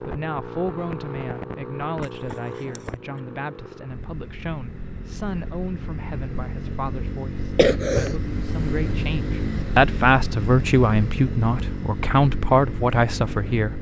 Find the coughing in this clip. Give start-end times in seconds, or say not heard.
2.0-3.2, 7.5-8.2.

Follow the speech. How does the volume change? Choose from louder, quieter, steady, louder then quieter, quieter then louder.
louder.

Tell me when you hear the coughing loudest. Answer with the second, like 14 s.
8 s.